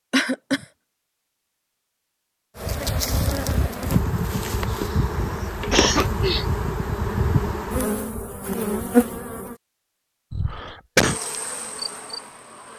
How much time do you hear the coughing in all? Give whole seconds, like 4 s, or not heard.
3 s.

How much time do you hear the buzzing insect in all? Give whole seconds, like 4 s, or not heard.
9 s.